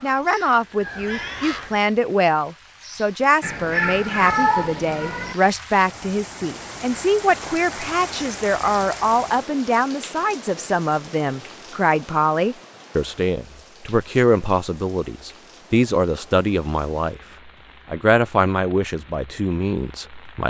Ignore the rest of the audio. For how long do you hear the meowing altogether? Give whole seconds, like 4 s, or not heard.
2 s.